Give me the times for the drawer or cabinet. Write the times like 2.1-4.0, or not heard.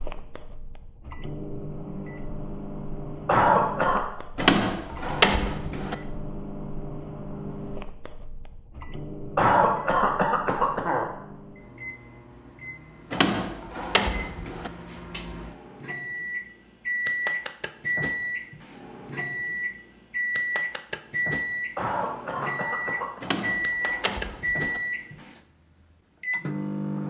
4.3-6.0, 13.1-14.7, 23.2-24.8.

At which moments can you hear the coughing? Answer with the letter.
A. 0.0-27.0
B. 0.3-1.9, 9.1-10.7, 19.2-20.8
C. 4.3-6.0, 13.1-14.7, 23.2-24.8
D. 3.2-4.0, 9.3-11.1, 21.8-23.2
D.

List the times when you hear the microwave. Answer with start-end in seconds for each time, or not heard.
0.0-27.0.